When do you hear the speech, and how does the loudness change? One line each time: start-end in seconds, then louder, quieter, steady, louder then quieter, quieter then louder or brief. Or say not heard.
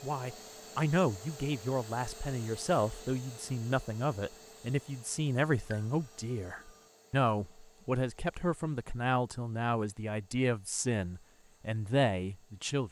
0.0-12.8 steady.